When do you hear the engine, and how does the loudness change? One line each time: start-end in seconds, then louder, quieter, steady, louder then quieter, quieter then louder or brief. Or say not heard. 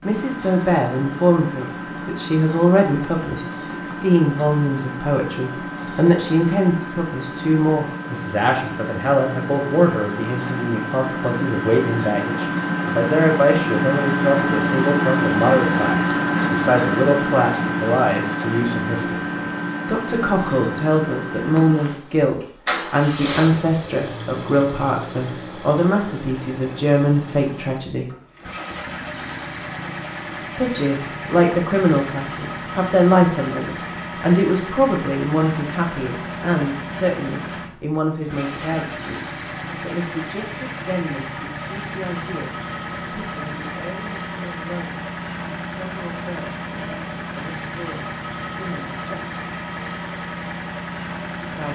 0.0-51.7 louder then quieter.